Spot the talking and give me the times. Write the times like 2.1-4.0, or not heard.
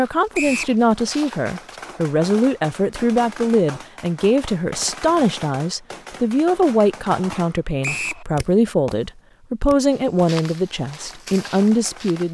0.0-12.2.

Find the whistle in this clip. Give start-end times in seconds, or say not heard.
0.3-0.8, 7.8-8.2.